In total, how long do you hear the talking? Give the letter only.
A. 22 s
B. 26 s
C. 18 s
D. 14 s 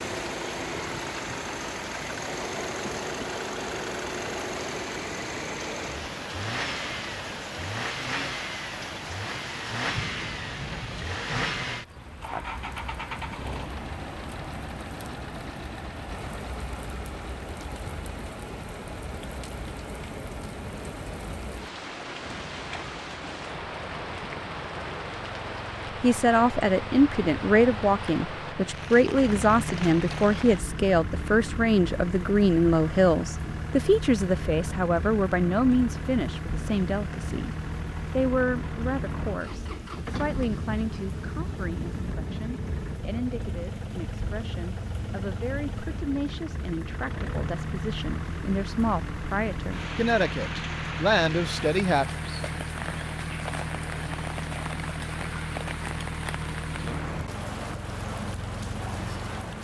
B.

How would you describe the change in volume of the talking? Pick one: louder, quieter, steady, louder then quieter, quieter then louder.
quieter then louder.